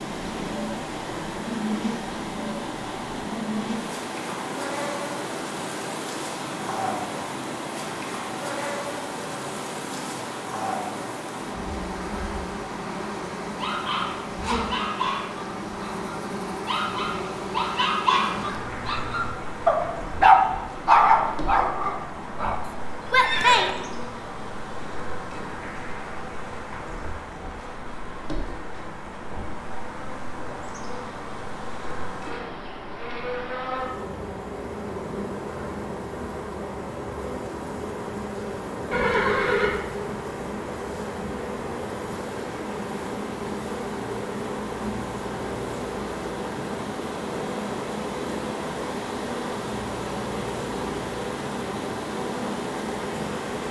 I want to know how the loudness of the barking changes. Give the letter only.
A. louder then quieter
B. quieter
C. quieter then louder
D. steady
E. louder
E.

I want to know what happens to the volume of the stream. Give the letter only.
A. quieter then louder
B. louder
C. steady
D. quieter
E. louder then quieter
A.